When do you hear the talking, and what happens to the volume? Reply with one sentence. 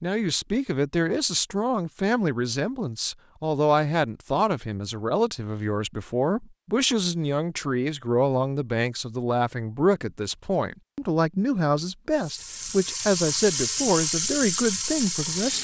You can hear the talking from 0.0 to 15.6 s, at a steady volume.